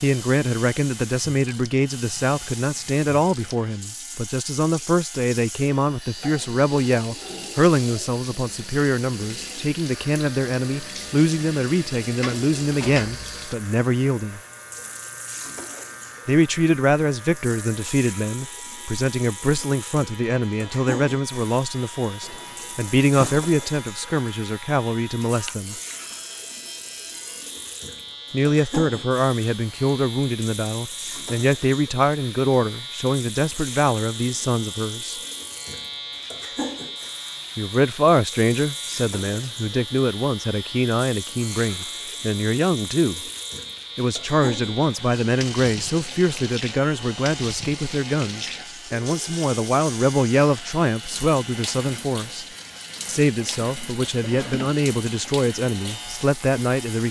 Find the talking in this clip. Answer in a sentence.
You can hear the talking from 0.0 to 14.4 s, from 16.2 to 25.8 s, from 28.3 to 35.2 s, from 37.5 to 43.2 s, from 44.0 to 52.5 s and from 53.0 to 57.0 s.